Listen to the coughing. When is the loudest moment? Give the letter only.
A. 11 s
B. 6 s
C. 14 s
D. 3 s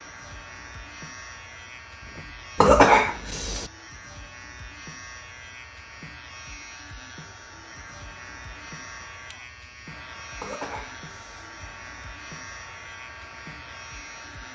D.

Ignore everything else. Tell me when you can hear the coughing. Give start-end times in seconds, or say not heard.
2.5-3.7, 10.4-11.5.